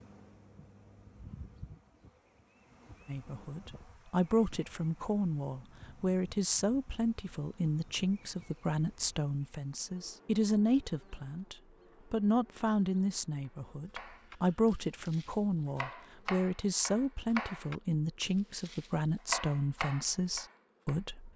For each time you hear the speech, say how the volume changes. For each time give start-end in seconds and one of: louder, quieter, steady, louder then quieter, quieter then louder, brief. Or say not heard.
3.0-21.3 steady.